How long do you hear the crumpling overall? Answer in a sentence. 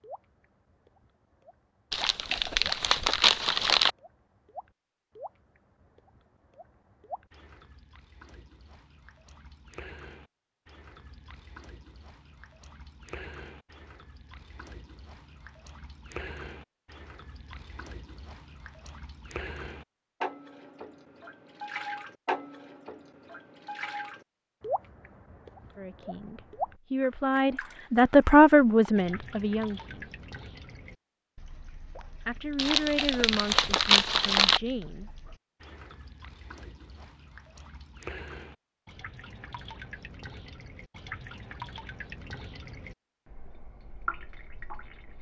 The crumpling can be heard for 4 seconds in total.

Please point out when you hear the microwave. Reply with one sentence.
You can't hear the microwave here.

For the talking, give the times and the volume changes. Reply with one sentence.
You can hear the talking from 25.8 to 30.1 s, getting louder then quieter; and briefly from 32.2 to 35.1 s.